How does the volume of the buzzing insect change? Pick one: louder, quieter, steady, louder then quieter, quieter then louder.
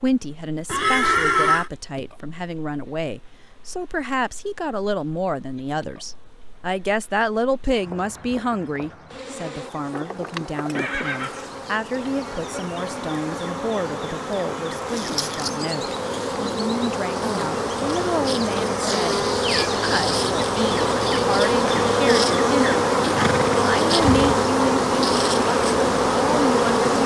louder.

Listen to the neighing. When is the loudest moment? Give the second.
1 s.